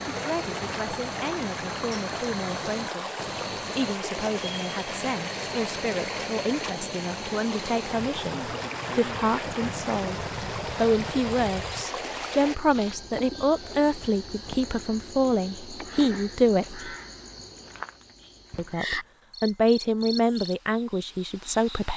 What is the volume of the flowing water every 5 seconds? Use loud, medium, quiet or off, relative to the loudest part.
loud, loud, loud, off, off.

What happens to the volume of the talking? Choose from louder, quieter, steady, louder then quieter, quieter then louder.
louder.